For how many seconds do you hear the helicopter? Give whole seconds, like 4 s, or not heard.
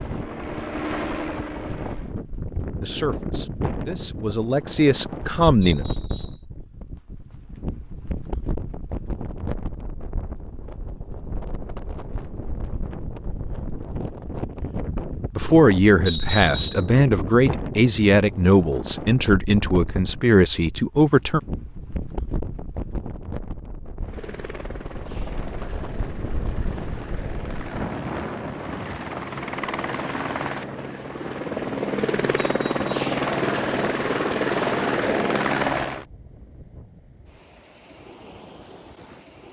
14 s.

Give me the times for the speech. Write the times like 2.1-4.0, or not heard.
2.8-5.8, 15.3-21.4.